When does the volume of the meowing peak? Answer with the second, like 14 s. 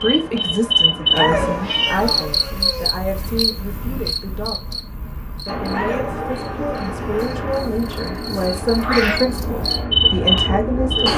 9 s.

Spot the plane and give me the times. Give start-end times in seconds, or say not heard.
0.0-2.3, 5.5-11.1.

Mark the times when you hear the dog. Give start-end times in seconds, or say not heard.
1.1-2.9, 5.7-7.4.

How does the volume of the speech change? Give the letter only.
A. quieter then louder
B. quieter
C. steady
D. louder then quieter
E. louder
A.